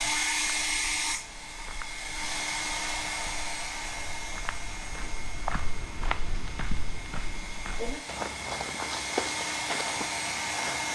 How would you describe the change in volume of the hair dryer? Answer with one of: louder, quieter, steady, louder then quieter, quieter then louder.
quieter then louder.